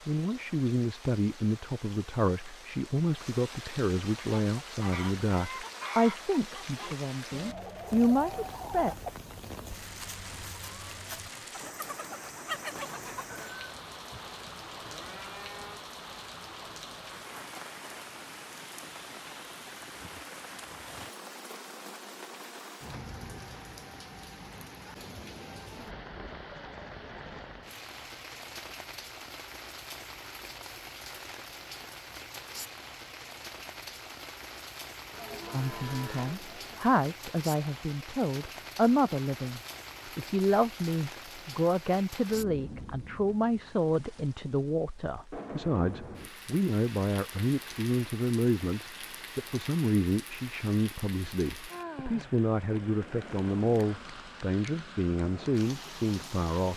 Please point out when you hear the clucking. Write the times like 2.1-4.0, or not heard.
4.2-13.5.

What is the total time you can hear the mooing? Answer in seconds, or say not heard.
4 s.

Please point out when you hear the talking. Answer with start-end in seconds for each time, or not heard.
0.1-8.9, 35.5-56.7.